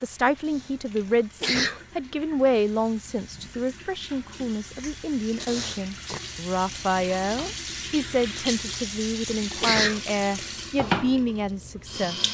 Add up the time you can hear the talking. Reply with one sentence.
The talking can be heard for 12 seconds in total.